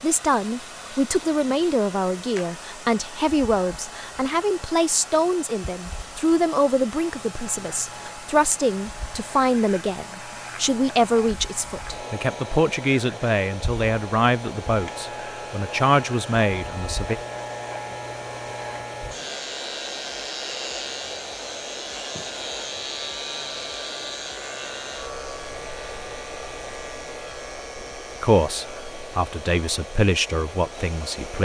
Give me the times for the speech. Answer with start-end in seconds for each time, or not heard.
0.0-17.1, 28.2-31.4.